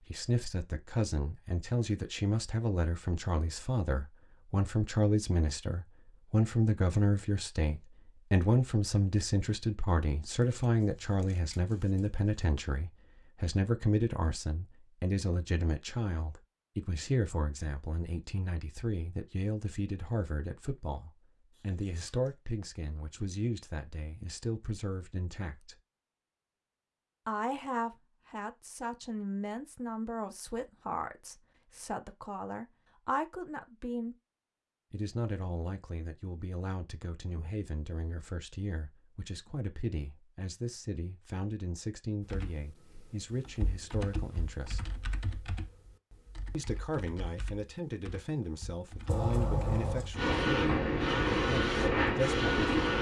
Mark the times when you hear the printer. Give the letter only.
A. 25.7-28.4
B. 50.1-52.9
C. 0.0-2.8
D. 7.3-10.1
B.